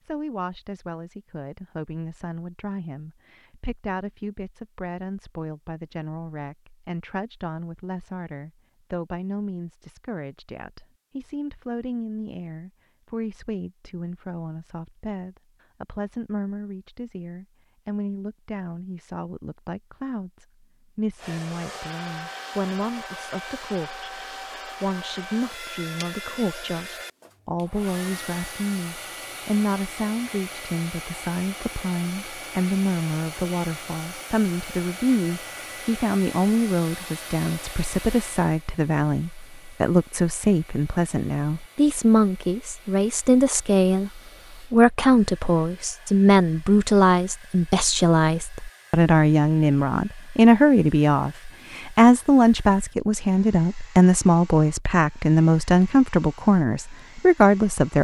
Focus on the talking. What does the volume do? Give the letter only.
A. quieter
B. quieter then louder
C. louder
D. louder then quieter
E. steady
C.